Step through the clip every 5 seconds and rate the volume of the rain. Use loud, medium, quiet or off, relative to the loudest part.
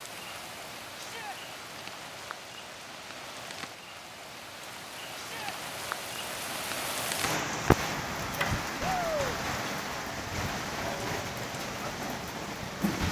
medium, loud, loud.